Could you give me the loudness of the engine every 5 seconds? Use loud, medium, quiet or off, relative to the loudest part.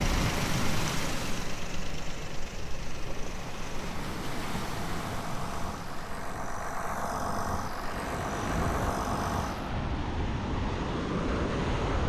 medium, loud, off.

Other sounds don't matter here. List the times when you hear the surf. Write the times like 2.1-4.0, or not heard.
0.0-12.0.